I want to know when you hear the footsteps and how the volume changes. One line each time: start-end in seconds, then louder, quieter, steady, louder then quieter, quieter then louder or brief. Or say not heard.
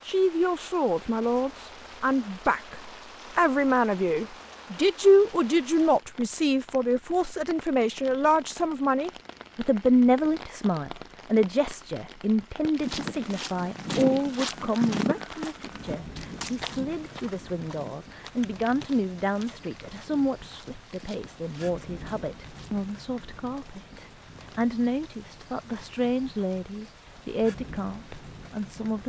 12.7-22.9 quieter.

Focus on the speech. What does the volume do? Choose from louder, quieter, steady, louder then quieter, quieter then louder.
quieter.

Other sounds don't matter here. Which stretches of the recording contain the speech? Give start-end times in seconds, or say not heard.
0.1-29.0.